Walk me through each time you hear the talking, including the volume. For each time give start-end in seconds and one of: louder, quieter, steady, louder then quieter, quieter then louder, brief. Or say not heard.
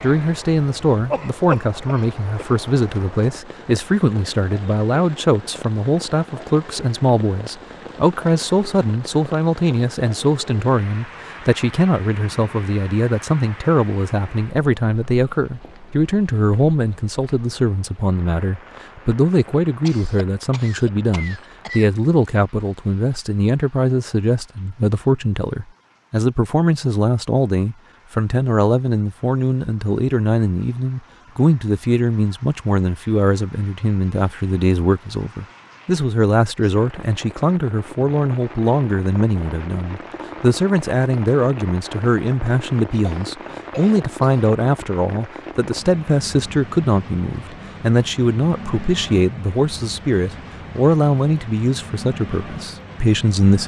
0.0-53.6 steady.